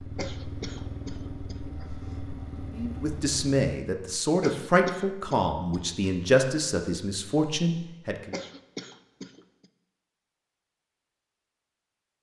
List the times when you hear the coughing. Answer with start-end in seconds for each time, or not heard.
0.1-1.9, 4.4-6.0, 8.3-9.7.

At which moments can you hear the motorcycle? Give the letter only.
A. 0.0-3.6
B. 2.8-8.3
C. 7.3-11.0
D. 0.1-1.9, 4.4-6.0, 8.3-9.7
A.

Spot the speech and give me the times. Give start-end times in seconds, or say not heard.
2.8-8.3.